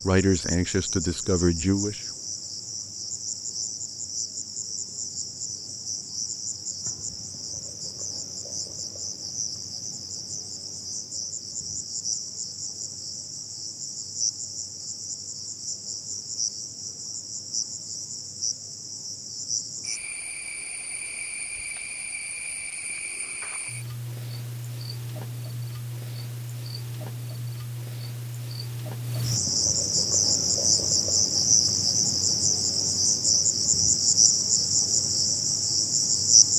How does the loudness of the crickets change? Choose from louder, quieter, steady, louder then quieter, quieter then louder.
louder.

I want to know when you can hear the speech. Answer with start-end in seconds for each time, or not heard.
0.0-2.0.